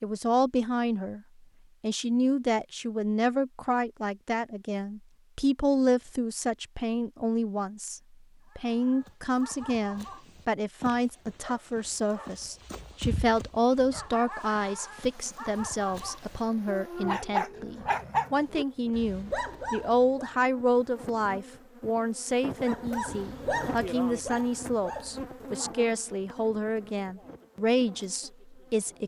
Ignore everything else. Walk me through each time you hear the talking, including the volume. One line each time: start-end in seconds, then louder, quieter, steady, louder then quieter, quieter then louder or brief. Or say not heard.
0.0-1.2 brief
1.8-29.0 steady.